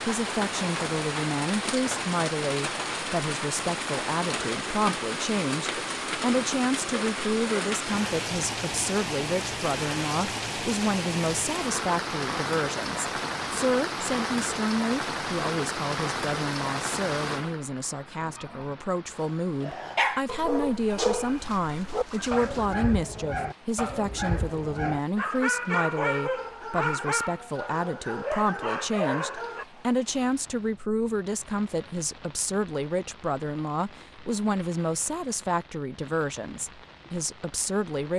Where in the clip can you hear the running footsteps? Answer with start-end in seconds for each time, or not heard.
not heard.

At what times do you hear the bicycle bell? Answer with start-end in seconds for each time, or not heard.
not heard.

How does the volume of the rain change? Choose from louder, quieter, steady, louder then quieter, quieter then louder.
quieter.